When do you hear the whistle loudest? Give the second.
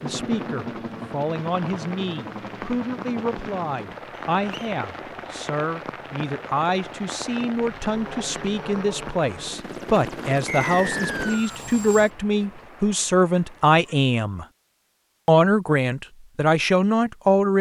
11 s.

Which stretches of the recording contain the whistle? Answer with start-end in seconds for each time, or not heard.
4.2-4.8, 10.4-11.6.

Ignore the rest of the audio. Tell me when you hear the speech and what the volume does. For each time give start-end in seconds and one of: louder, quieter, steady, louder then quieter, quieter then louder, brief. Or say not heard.
0.0-14.4 louder
15.2-17.5 brief.